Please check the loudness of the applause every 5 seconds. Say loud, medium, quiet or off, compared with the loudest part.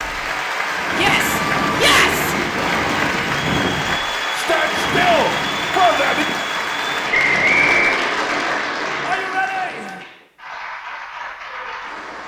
loud, loud, medium.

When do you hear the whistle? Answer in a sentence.
You can hear the whistle from 7.1 to 8.0 s.